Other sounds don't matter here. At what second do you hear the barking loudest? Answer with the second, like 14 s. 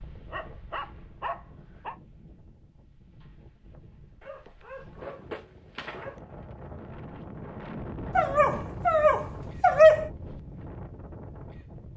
10 s.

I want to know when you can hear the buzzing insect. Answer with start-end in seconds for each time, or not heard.
not heard.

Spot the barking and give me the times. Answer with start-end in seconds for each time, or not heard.
0.3-1.9, 4.2-6.2, 8.2-10.1.